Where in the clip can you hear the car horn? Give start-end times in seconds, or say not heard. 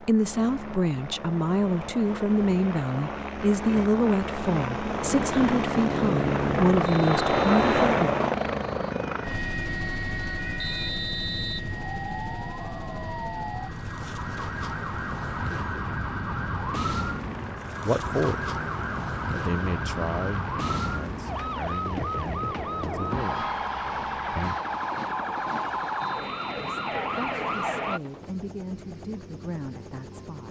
not heard.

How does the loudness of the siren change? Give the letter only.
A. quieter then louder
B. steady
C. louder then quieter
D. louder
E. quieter
D.